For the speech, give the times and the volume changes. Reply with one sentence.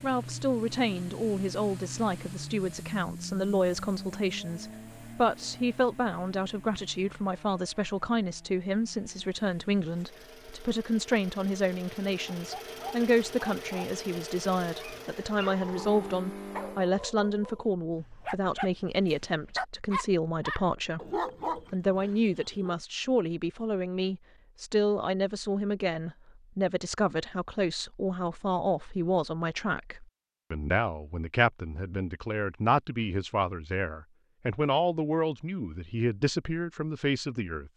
The speech can be heard from 0.0 to 37.7 s, at a steady volume.